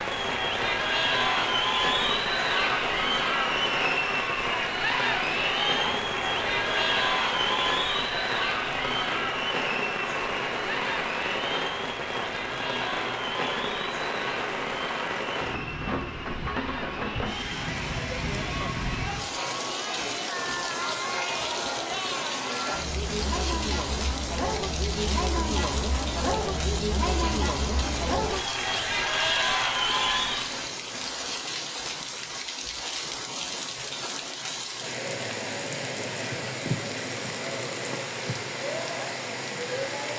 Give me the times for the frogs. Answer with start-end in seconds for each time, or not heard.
not heard.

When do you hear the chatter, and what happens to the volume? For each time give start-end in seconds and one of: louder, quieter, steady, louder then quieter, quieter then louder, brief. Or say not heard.
0.0-30.7 quieter then louder.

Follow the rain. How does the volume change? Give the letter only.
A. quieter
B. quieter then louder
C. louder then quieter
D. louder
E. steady
E.